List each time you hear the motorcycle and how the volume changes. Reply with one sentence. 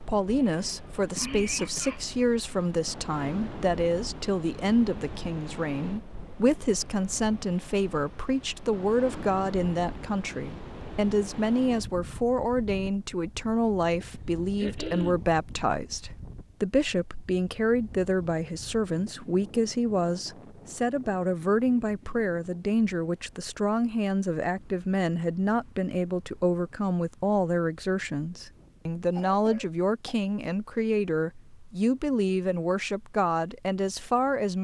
You can't hear the motorcycle here.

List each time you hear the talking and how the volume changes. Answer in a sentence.
You can hear the talking from 0.0 to 34.5 s, at a steady volume.